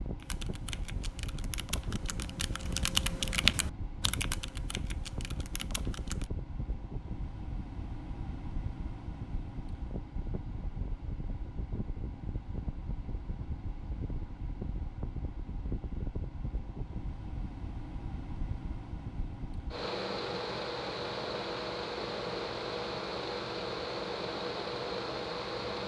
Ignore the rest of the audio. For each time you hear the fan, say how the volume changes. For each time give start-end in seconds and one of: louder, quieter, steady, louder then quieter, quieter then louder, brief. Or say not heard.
0.0-25.8 louder.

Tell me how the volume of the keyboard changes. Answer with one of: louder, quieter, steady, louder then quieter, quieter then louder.
louder then quieter.